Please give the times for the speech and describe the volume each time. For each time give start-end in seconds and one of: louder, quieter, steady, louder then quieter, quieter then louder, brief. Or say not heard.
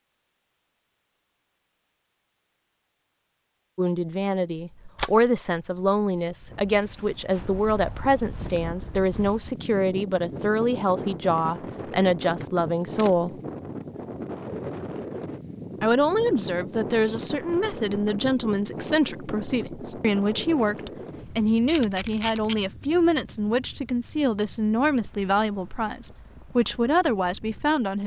3.8-13.3 steady
15.8-28.0 steady.